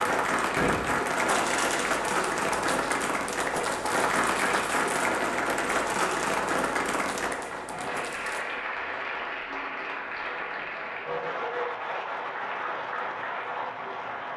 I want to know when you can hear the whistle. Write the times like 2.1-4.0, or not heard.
not heard.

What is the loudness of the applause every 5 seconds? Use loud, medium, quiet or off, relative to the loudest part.
loud, loud, medium.